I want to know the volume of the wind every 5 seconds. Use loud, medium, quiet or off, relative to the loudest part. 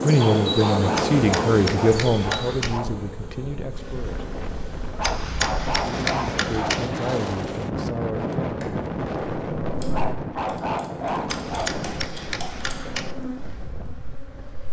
loud, loud, medium.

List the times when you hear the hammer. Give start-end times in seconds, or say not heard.
0.9-2.8, 5.0-6.8, 11.2-13.2.